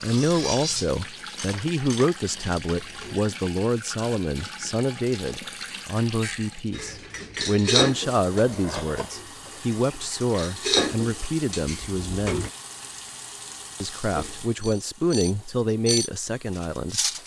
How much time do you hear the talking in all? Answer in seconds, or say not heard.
16 s.